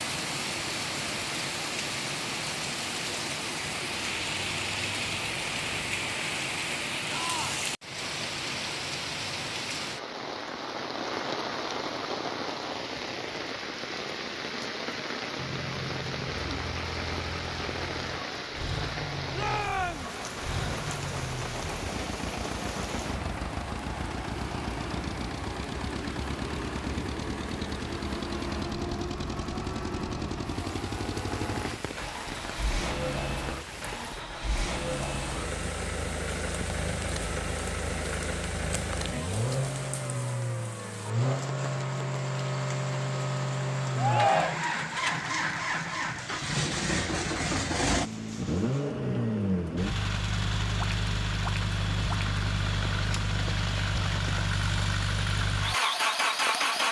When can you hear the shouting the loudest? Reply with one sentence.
The loudest moment of the shouting is at 44 seconds.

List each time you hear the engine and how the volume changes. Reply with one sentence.
You can hear the engine from 15.3 to 56.8 s, getting louder.